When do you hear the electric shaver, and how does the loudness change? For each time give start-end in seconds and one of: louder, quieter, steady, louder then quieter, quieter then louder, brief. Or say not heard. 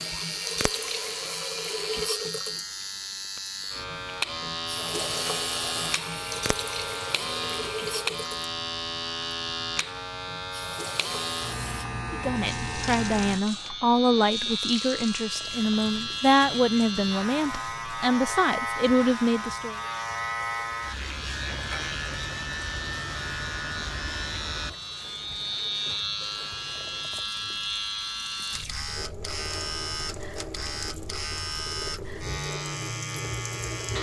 0.0-33.9 steady.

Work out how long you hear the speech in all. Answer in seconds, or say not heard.
8 s.